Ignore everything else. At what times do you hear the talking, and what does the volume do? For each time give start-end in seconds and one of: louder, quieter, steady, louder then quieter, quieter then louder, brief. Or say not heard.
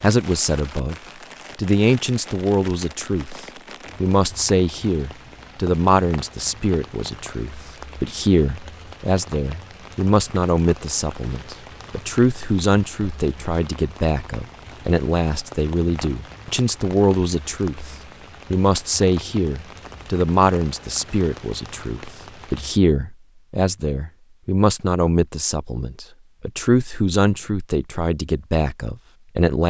0.0-0.9 brief
1.6-29.6 steady.